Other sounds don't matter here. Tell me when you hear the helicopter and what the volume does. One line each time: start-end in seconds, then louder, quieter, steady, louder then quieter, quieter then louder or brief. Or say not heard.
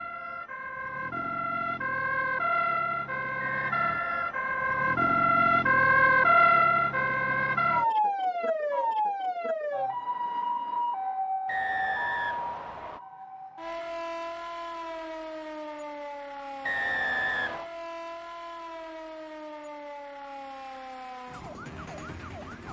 not heard.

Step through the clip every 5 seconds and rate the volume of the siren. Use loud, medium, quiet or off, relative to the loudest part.
medium, loud, medium, quiet, quiet.